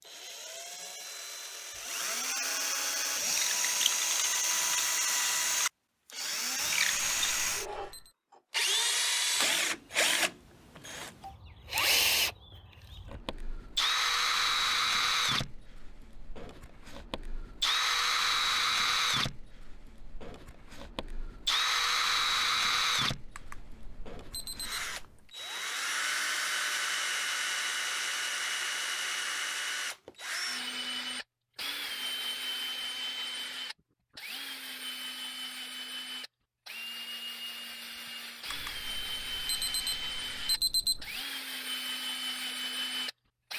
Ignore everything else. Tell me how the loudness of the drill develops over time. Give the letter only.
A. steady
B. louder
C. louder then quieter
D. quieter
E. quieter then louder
D.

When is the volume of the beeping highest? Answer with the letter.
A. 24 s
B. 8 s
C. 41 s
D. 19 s
C.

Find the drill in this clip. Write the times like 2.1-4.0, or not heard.
0.1-43.5.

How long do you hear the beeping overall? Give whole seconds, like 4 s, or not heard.
6 s.